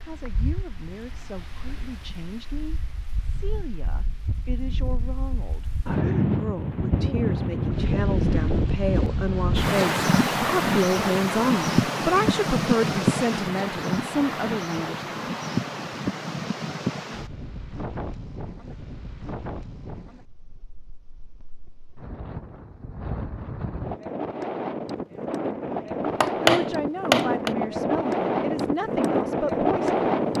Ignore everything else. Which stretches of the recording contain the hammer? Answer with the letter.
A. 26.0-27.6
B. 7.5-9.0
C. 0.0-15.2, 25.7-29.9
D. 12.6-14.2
A.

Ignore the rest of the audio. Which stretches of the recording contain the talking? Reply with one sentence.
The talking can be heard from 0.0 to 15.2 s and from 25.7 to 29.9 s.